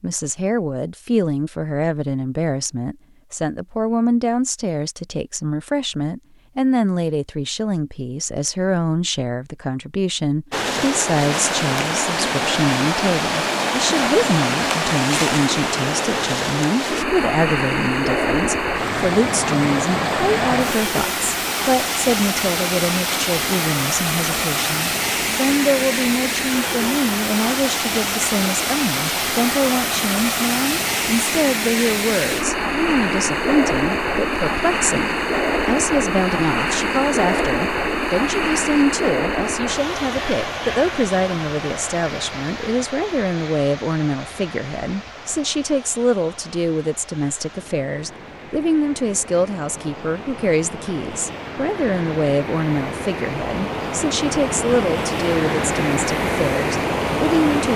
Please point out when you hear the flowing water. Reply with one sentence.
The flowing water can be heard from 10.5 to 57.7 s.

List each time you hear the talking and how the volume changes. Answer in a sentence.
The talking can be heard from 0.0 to 57.7 s, at a steady volume.